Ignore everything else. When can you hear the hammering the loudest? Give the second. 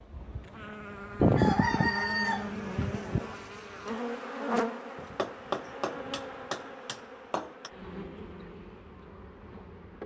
5 s.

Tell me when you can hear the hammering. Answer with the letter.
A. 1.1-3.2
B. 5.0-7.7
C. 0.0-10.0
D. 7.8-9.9
B.